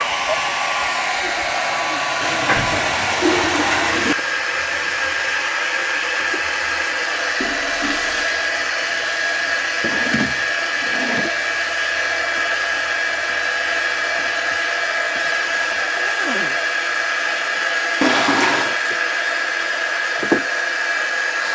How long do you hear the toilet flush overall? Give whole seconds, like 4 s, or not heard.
4 s.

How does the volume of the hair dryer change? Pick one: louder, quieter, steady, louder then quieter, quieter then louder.
steady.